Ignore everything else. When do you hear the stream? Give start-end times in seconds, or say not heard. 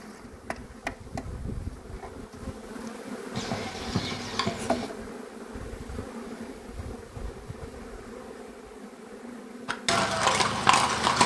not heard.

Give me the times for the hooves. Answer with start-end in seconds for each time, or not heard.
3.3-4.9, 9.7-11.2.